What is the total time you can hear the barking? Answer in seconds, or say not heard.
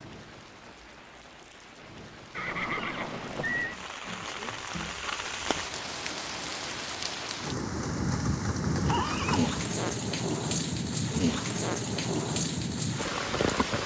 not heard.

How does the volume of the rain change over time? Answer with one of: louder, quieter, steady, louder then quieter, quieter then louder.
louder.